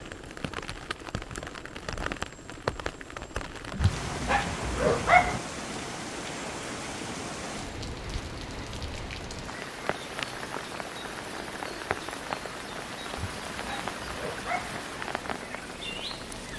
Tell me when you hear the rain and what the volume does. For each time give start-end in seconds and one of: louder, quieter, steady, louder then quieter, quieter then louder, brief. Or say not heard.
0.0-16.5 steady.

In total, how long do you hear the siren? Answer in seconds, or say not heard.
not heard.